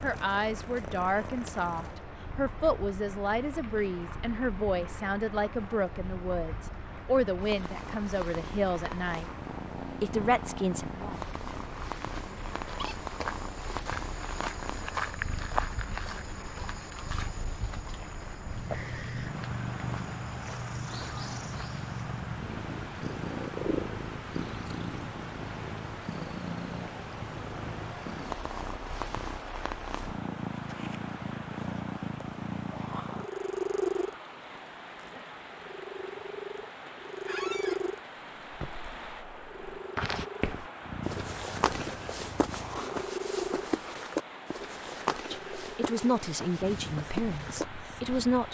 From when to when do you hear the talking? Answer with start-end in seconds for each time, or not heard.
0.0-9.3, 10.0-11.2, 45.1-48.4.